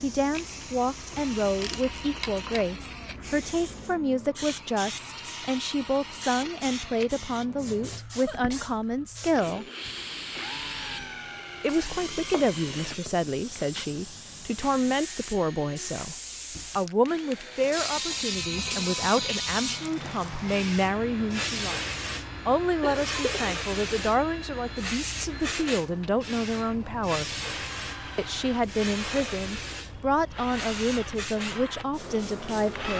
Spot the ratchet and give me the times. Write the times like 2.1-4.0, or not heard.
1.1-2.7, 17.8-19.9.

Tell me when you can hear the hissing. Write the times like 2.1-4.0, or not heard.
0.0-32.9.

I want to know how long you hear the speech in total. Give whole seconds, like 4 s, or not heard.
29 s.